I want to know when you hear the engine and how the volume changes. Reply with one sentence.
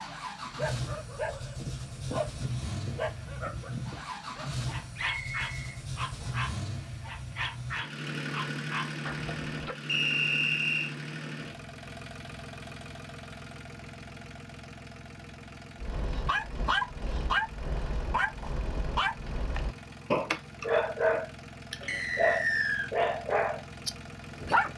You can hear the engine from 0.0 to 24.7 s, getting quieter.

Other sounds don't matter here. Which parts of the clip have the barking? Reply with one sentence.
You can hear the barking from 0.6 to 9.8 s and from 15.8 to 24.7 s.